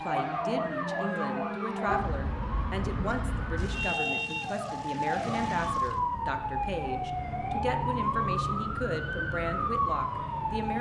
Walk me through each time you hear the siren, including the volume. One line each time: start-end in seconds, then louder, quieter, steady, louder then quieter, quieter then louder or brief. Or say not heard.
0.0-10.7 steady.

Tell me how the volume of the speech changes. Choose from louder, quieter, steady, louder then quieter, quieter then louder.
steady.